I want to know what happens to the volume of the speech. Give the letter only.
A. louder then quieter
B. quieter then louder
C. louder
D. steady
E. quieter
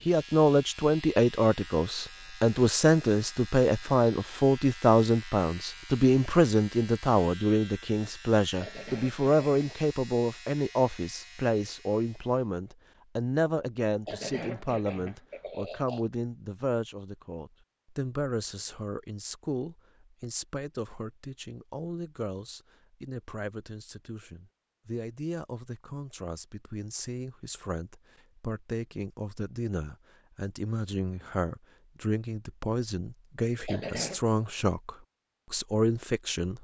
B.